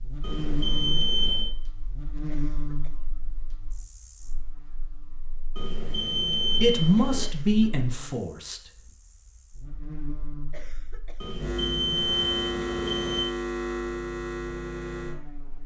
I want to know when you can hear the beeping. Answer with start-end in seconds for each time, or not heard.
0.2-1.5, 5.5-7.3, 11.2-13.2.